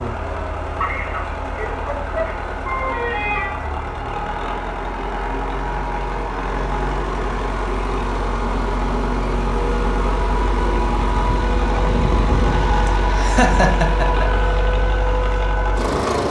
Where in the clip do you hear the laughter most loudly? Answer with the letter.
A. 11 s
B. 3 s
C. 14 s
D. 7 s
C.